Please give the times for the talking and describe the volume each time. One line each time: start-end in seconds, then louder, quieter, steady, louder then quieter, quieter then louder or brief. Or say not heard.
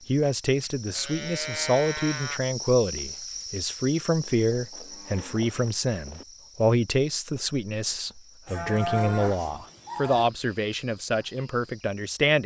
0.1-12.4 steady.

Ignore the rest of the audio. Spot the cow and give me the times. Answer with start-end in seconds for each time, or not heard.
0.9-2.4, 4.5-6.2, 8.4-10.2.